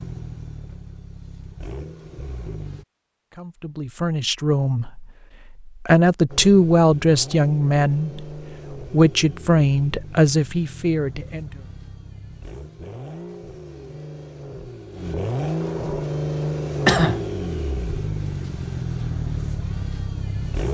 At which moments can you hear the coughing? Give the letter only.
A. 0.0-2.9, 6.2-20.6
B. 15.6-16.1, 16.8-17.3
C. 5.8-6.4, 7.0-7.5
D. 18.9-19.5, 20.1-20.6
B.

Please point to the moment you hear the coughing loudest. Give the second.
17 s.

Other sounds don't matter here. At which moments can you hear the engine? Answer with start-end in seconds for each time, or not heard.
0.0-2.9, 6.2-20.6.